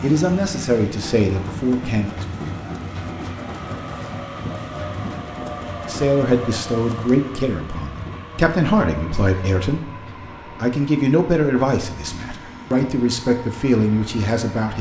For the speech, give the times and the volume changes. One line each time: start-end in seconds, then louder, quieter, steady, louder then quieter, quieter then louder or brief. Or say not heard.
0.0-2.2 brief
5.8-14.7 steady.